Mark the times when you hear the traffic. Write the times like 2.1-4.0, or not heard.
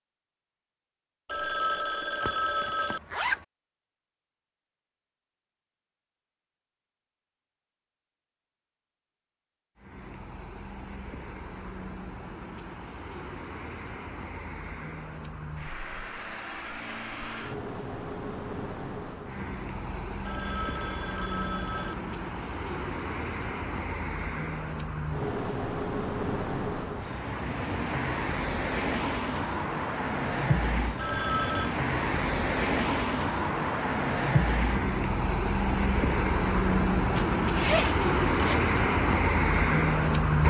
9.8-40.4.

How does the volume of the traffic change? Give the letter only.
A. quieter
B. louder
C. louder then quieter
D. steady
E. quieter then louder
B.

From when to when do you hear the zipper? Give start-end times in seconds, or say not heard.
2.2-3.5, 37.1-38.6.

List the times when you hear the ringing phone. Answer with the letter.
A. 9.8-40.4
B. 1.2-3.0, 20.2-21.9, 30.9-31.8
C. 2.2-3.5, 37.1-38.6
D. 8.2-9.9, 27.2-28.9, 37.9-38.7
B.